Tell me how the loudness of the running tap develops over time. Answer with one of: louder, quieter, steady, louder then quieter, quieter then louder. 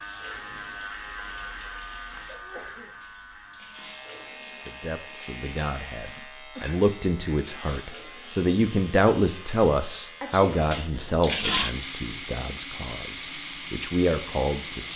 louder.